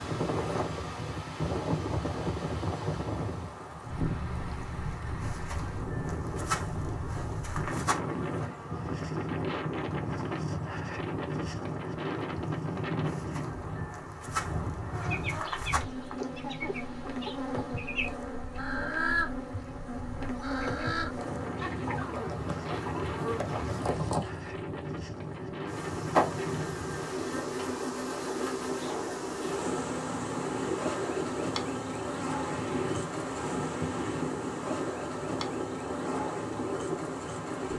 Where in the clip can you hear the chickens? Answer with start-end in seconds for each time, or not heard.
14.8-24.3.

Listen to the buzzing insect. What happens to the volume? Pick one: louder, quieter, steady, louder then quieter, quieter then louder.
louder.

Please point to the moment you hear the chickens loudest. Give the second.
19 s.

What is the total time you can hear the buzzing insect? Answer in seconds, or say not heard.
38 s.